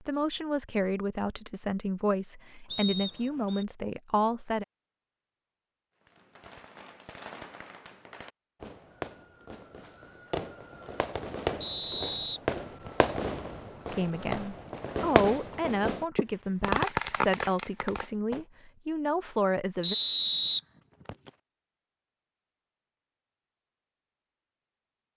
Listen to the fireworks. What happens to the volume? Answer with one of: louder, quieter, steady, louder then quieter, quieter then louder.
louder.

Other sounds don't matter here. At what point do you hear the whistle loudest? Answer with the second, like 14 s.
20 s.